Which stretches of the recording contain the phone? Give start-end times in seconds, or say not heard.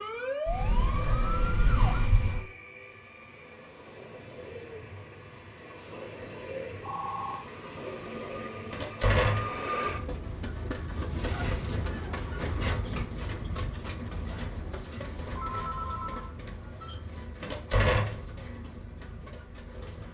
6.8-7.5, 14.9-16.4.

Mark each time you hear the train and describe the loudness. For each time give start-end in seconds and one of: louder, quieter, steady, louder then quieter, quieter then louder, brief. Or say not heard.
0.0-20.1 louder then quieter.